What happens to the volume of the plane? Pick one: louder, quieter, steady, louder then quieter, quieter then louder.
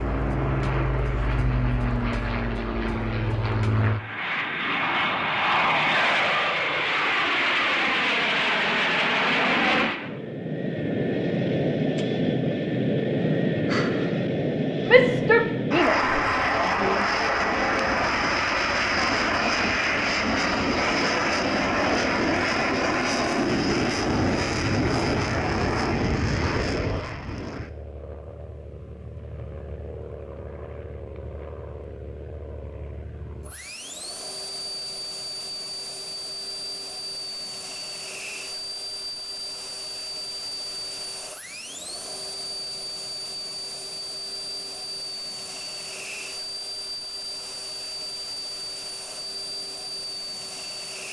quieter.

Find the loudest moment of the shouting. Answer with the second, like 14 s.
15 s.